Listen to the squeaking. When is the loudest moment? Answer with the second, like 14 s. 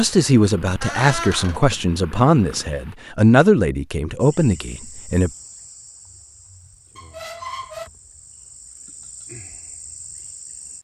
1 s.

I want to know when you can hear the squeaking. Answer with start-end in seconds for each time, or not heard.
0.8-1.6, 7.0-7.9.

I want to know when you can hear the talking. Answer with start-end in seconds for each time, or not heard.
0.0-5.3.